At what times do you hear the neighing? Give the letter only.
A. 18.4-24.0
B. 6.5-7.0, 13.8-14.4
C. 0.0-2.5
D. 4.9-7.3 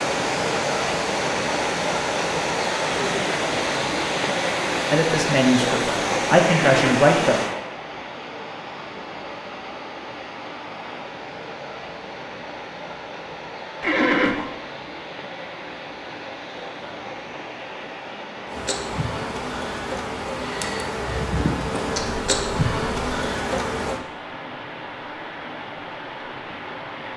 B.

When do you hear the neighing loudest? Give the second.
14 s.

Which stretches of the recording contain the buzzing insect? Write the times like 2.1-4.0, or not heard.
18.4-24.0.